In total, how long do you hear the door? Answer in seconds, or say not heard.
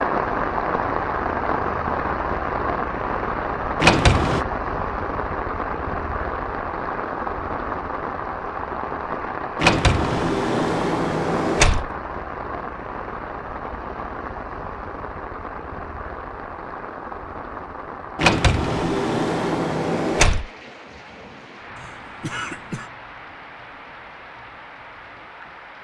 5 s.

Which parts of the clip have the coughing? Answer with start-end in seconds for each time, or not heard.
21.8-22.9.